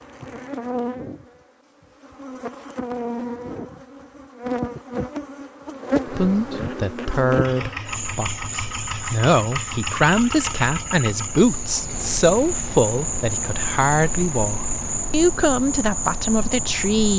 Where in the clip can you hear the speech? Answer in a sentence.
The speech can be heard from 6.0 to 17.1 s.